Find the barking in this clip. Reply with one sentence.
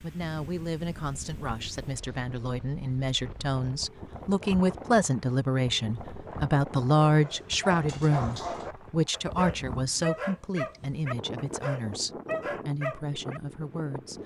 The barking can be heard from 7.0 to 13.4 s.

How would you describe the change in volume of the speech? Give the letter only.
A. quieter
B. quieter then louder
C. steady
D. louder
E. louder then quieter
E.